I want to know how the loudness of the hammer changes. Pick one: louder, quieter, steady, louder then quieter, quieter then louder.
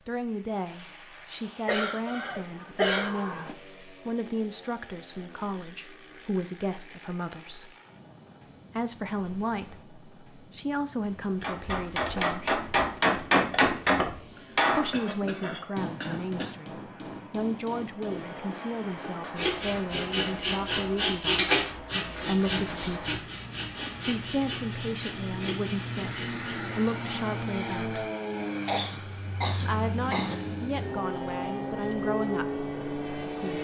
quieter.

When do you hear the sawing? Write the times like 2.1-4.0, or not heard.
19.4-26.5.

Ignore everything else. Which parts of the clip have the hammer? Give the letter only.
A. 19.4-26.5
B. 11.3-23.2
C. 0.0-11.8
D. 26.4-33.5
B.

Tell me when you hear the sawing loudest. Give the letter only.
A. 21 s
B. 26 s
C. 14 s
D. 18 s
A.